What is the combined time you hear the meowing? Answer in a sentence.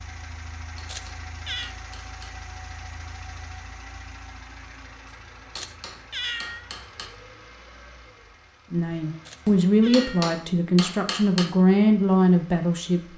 You can hear the meowing for 3 seconds altogether.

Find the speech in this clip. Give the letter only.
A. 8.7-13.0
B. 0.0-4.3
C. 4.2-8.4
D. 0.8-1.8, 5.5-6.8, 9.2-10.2
A.